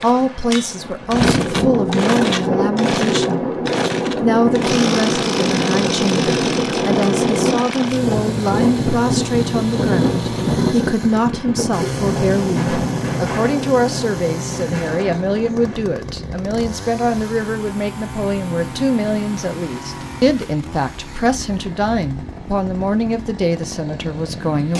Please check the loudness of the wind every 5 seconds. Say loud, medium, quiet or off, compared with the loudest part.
loud, loud, loud, quiet, quiet.